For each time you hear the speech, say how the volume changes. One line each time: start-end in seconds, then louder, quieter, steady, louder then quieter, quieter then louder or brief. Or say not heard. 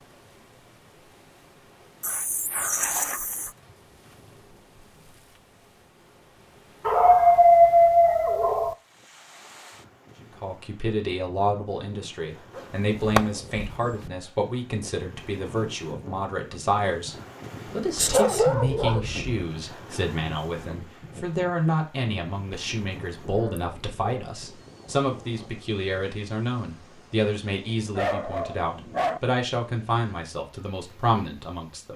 10.2-31.9 steady.